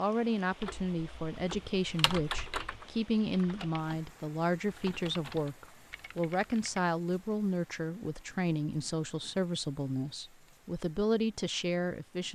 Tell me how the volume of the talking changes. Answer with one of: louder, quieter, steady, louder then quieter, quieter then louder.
steady.